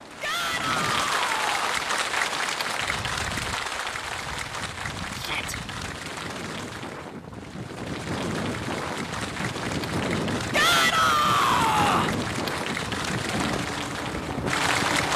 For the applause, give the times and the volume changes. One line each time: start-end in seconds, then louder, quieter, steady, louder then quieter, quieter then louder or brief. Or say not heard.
0.0-15.1 quieter then louder.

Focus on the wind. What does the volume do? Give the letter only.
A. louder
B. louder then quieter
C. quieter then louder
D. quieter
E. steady
A.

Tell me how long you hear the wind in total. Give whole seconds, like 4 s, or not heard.
15 s.